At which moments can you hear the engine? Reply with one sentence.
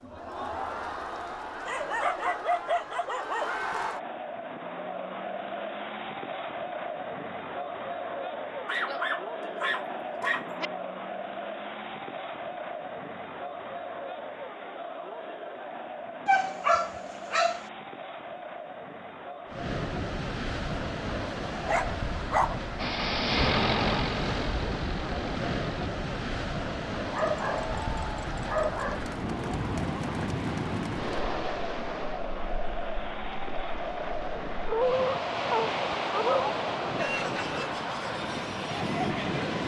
The engine can be heard from 22.8 to 25.9 s.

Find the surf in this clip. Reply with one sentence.
You can hear the surf from 19.4 to 39.6 s.